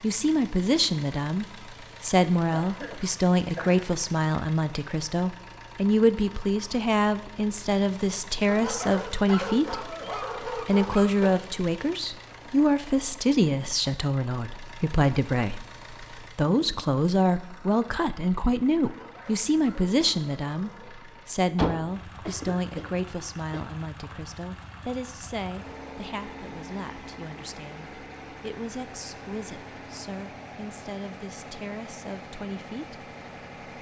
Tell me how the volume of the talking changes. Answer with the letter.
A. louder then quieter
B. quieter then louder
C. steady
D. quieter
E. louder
D.